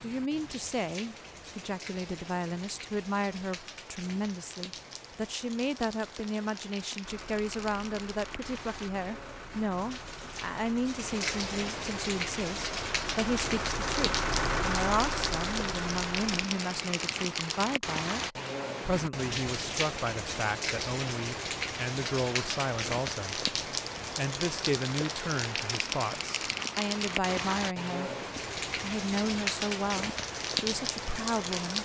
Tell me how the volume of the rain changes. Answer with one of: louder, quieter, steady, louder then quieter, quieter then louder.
louder.